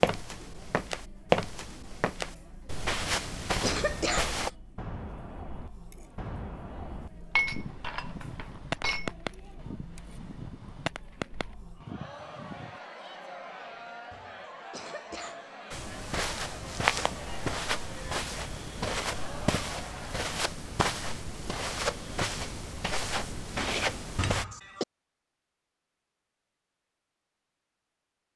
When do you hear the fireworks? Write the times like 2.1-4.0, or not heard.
3.5-12.8.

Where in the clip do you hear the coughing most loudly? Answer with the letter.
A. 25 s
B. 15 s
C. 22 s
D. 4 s
D.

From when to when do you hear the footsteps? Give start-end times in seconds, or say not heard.
0.0-4.5, 15.7-24.4.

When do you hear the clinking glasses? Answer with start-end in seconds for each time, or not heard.
7.3-9.2, 23.6-24.3.